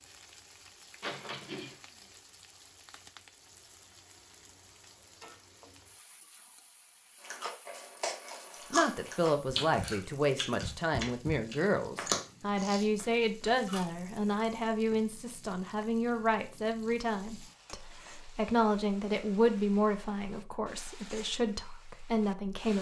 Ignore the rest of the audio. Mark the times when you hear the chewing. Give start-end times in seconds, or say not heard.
7.2-13.8.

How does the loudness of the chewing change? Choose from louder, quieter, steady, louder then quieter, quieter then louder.
louder then quieter.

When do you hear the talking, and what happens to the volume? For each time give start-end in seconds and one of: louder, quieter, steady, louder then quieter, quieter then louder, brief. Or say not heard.
8.7-22.7 steady.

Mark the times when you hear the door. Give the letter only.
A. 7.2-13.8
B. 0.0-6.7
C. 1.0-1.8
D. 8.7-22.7
C.